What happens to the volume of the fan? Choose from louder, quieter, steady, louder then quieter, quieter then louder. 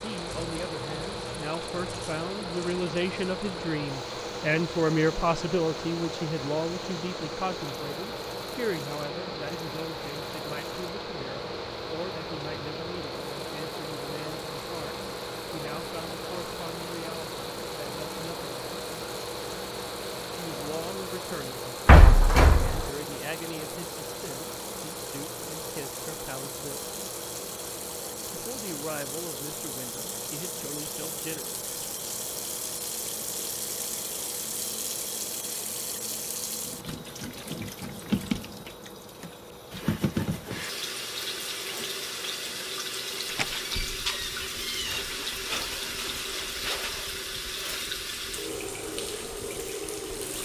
quieter.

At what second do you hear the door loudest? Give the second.
22 s.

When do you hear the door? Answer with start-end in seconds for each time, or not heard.
21.9-22.9, 43.2-45.0.